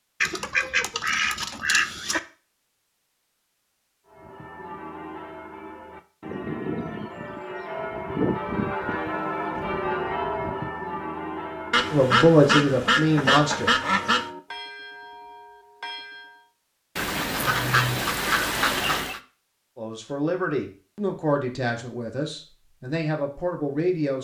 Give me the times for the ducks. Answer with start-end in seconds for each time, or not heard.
0.2-2.2, 11.7-14.3, 16.9-19.2.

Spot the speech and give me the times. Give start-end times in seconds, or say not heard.
11.9-13.8, 19.8-24.1.